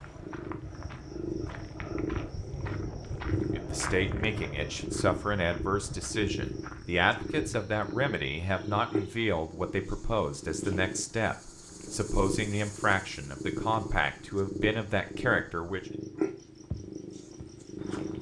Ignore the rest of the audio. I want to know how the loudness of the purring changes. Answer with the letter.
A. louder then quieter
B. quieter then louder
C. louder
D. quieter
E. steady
E.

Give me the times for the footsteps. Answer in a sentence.
The footsteps can be heard from 0.0 to 8.0 s and from 16.6 to 18.1 s.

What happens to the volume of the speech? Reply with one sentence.
The loudness of the speech stays about the same.